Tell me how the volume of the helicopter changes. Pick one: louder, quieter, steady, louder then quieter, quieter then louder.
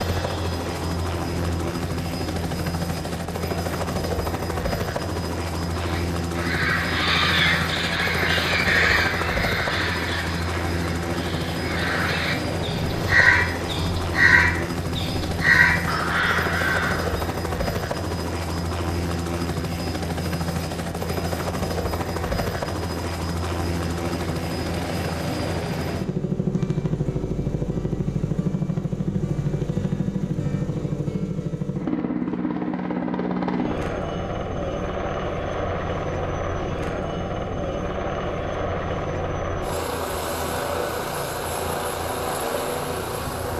steady.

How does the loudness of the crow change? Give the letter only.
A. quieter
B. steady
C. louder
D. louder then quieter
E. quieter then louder
E.